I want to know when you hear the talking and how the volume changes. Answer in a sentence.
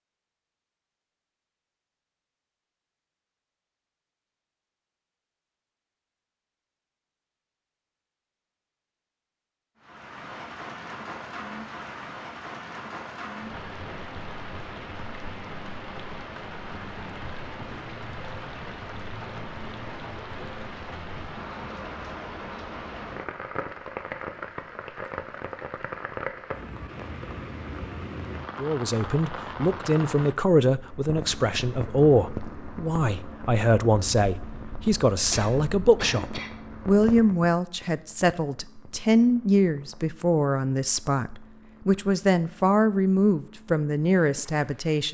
You can hear the talking from 28.6 to 45.0 s, at a steady volume.